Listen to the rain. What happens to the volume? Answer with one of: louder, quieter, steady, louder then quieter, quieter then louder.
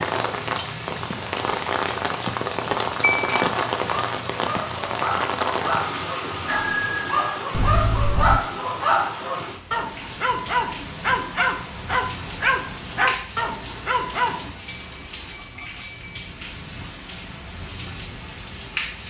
quieter.